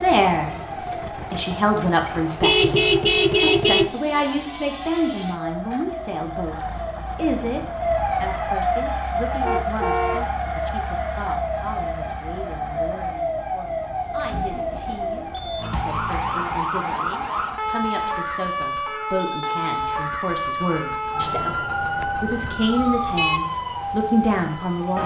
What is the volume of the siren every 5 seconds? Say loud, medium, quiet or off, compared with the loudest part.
medium, loud, loud, loud, loud.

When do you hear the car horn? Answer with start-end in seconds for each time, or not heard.
2.4-3.9, 9.4-10.7, 22.0-23.5.